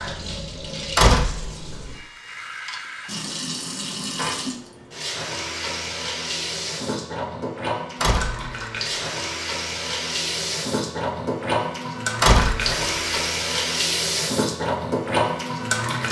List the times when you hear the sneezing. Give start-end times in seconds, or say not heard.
not heard.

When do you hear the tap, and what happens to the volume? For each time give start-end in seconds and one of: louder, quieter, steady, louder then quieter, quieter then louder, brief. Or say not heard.
0.0-16.0 louder.